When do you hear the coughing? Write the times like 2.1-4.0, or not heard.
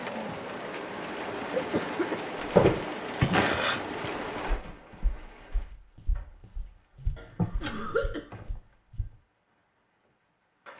1.5-2.2, 7.2-8.3.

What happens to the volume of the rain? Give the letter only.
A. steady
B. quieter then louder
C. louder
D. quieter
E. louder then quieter
B.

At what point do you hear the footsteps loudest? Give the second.
3 s.